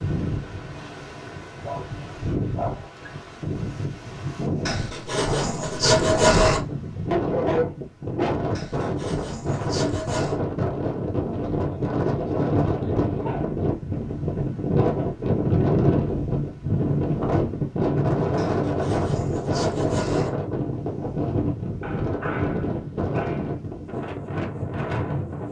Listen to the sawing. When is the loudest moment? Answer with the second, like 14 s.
6 s.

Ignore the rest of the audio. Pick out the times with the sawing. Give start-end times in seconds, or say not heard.
4.7-6.7, 8.6-10.4, 18.4-20.4.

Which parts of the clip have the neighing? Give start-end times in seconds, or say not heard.
not heard.